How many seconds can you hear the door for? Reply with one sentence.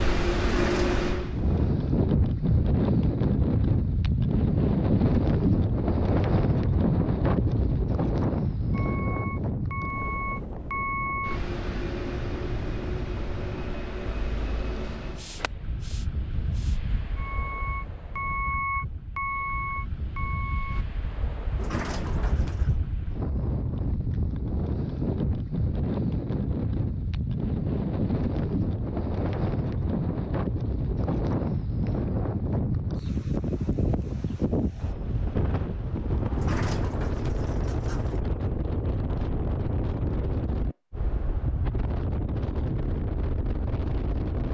You can hear the door for 4 seconds altogether.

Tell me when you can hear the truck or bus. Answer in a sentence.
You can hear the truck or bus from 0.0 to 1.8 s and from 8.7 to 20.9 s.